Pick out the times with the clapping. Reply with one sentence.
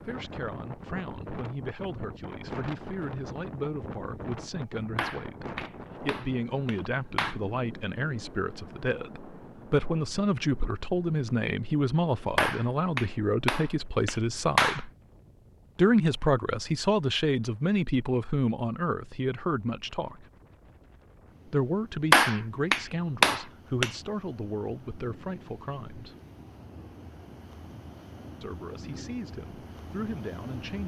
You can hear the clapping from 5.0 to 7.4 s, from 12.3 to 14.8 s and from 22.1 to 23.9 s.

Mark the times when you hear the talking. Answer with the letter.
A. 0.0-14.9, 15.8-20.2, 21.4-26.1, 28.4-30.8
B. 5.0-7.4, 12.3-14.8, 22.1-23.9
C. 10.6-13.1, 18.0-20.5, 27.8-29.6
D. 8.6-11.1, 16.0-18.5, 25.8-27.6
A.